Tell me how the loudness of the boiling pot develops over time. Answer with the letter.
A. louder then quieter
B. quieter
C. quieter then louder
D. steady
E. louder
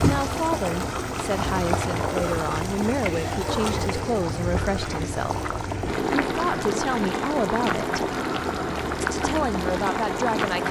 D.